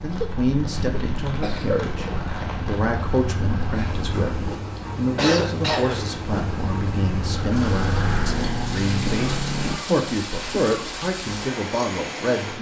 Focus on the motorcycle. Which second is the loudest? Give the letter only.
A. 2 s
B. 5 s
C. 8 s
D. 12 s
C.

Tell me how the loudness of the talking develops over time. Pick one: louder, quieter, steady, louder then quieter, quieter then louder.
steady.